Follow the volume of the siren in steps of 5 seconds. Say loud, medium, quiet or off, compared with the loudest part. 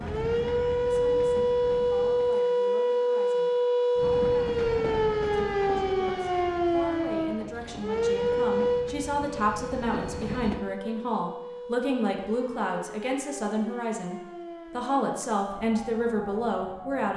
loud, loud, quiet, quiet.